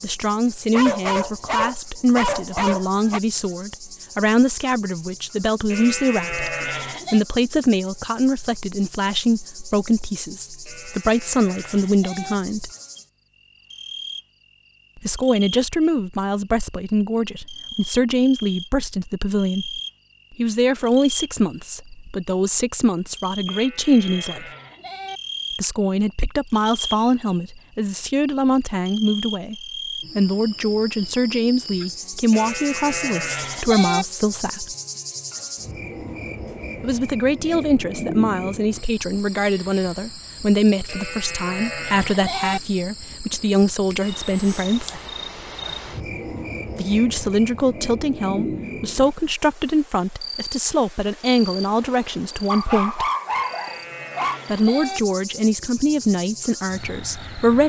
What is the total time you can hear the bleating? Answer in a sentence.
The bleating can be heard for 10 seconds in total.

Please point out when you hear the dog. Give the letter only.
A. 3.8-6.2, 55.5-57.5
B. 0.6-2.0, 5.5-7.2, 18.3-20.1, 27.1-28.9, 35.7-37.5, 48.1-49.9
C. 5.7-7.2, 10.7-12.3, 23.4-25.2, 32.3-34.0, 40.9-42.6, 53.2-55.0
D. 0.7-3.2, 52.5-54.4
D.